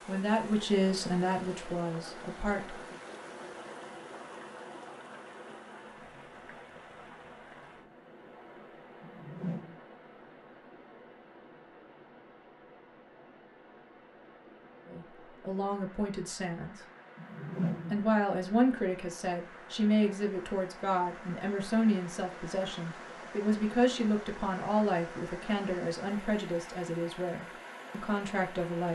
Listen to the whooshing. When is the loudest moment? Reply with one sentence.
The volume of the whooshing peaks at 18 seconds.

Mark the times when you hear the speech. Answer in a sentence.
You can hear the speech from 0.1 to 3.0 s, from 14.8 to 16.9 s and from 17.9 to 28.9 s.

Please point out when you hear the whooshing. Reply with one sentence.
The whooshing can be heard from 9.0 to 9.8 s and from 17.1 to 18.1 s.